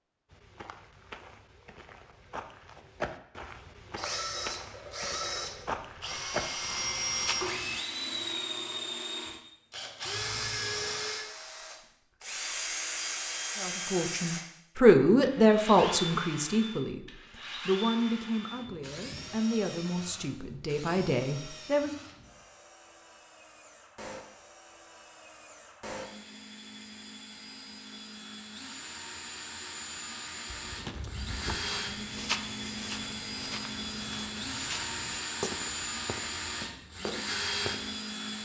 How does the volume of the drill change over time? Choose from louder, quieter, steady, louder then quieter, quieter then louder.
quieter then louder.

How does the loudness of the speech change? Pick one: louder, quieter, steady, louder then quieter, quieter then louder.
quieter.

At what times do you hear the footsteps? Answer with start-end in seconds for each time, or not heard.
0.3-7.8, 30.5-38.0.